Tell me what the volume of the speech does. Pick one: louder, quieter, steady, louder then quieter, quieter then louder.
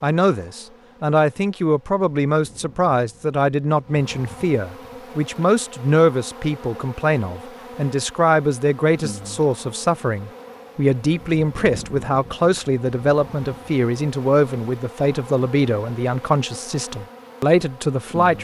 steady.